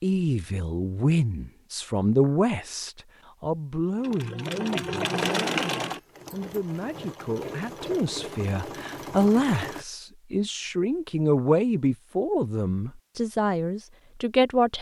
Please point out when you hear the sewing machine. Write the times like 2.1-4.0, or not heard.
4.0-9.8.